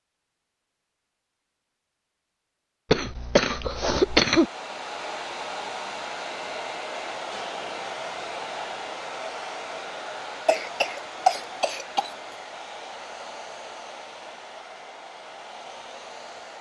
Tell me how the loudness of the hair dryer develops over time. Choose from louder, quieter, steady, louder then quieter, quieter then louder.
quieter.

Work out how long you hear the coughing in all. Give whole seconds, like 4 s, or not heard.
3 s.